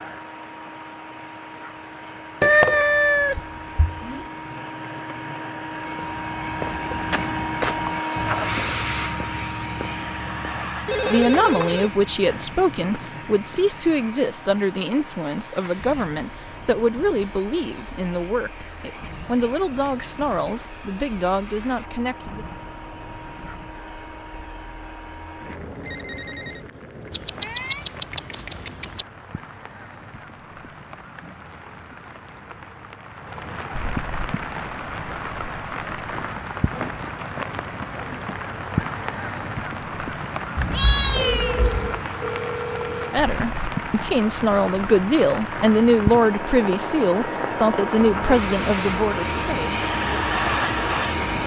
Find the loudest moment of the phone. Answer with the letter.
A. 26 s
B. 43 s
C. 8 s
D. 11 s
D.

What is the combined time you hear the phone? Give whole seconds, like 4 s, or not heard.
4 s.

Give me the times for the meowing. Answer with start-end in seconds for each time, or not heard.
2.4-4.2, 27.1-29.1, 40.5-42.0.